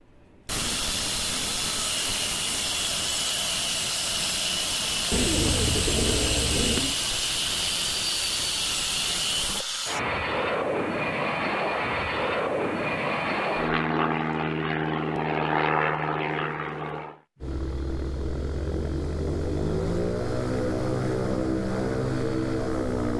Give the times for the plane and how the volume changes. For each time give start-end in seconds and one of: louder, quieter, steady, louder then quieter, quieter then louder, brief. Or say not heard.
0.1-23.1 steady.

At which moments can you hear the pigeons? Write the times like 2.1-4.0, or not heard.
5.1-7.0.